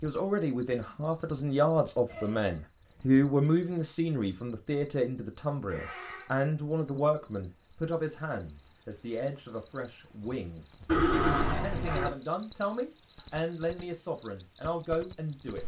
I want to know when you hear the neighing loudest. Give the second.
11 s.